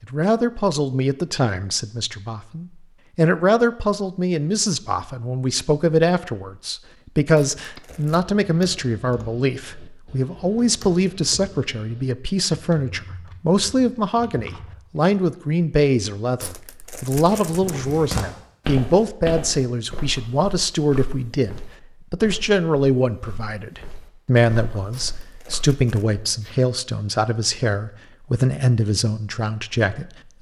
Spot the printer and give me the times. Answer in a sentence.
The printer can't be heard in this clip.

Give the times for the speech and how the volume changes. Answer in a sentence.
The speech can be heard from 0.0 to 30.3 s, at a steady volume.